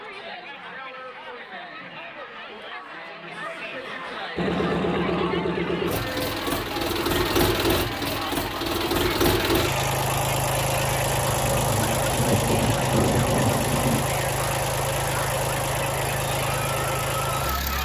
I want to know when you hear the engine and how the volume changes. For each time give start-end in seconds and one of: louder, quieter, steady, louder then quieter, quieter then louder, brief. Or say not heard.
4.3-17.8 steady.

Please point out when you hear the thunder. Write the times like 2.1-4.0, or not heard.
11.2-14.1.